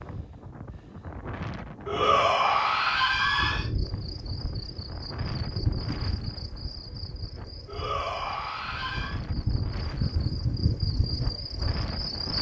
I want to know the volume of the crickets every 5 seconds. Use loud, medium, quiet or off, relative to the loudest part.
medium, medium, loud.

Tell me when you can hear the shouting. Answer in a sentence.
You can hear the shouting from 1.9 to 3.7 s and from 7.7 to 9.2 s.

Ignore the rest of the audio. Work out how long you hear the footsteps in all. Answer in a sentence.
You can't hear the footsteps here.